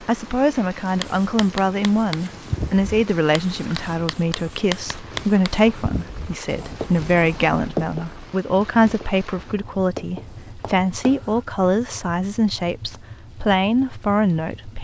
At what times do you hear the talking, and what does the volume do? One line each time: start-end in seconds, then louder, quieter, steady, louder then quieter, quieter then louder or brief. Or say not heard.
0.0-14.7 steady.